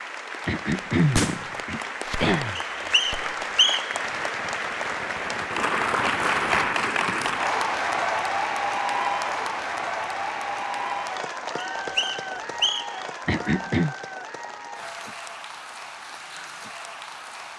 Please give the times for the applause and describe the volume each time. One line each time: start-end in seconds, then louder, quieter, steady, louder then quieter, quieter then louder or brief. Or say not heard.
0.0-17.5 louder then quieter.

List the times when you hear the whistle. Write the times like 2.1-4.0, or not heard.
2.5-4.0, 11.6-13.0.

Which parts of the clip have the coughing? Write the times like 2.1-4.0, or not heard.
0.5-2.6, 13.2-13.9.